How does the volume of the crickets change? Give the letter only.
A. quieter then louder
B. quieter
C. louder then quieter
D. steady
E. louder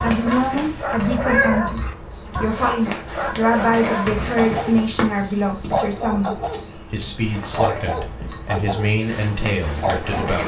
D.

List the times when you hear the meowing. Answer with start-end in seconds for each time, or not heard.
0.9-1.6.